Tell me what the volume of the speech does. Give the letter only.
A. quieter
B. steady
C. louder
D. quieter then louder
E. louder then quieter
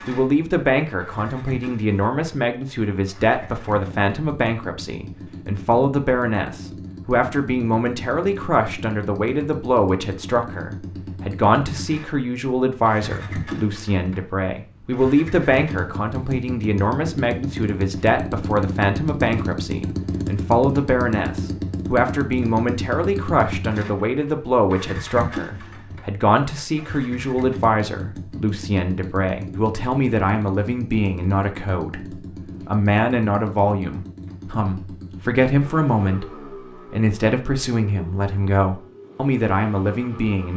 B.